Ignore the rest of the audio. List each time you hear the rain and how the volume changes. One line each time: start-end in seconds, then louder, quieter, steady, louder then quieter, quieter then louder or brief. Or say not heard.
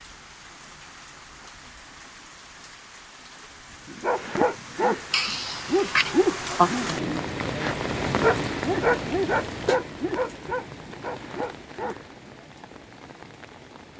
0.0-13.9 louder then quieter.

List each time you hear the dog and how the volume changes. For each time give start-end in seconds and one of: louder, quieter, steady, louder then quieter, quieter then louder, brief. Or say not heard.
3.9-12.2 quieter.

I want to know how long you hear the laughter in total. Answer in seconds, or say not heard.
2 s.